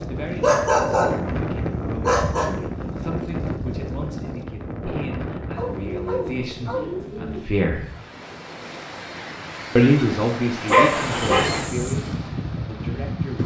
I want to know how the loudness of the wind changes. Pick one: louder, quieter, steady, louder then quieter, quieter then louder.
quieter then louder.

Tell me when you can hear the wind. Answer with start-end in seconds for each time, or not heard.
0.0-13.4.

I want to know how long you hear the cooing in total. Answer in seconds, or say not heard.
2 s.